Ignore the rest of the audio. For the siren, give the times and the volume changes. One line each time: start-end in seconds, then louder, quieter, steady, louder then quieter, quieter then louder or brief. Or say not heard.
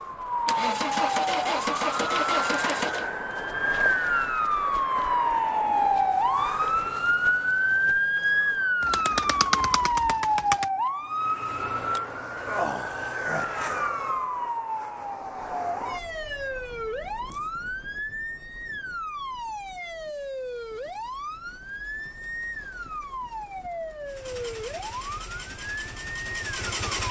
0.0-27.0 quieter.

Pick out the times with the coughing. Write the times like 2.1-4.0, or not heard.
not heard.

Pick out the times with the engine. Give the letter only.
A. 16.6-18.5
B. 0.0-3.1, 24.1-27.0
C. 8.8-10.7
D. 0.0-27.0
B.